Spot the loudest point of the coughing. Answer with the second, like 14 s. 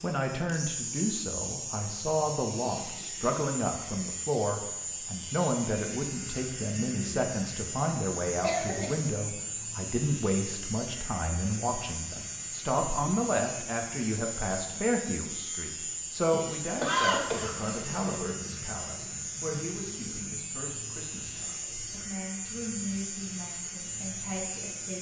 17 s.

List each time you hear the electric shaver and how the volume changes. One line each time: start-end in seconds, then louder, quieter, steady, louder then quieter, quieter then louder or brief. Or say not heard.
0.0-24.9 steady.